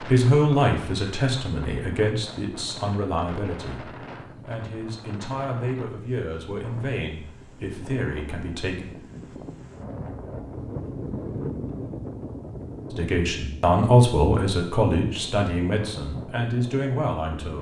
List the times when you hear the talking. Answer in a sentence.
You can hear the talking from 0.0 to 8.8 s and from 12.9 to 17.5 s.